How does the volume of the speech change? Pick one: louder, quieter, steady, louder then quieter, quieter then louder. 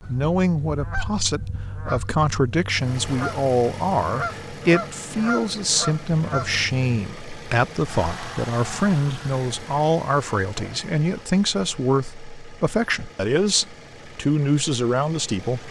steady.